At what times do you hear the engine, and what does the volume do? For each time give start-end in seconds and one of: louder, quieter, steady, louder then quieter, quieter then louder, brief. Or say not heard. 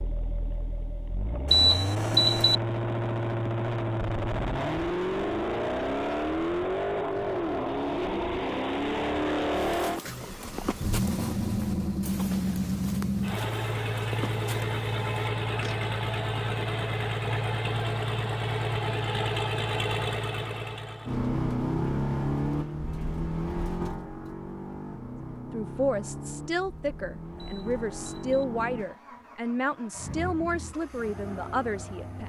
0.0-32.2 quieter.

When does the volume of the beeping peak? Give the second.
2 s.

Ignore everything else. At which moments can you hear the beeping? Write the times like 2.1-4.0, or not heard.
1.4-2.5, 27.4-28.4.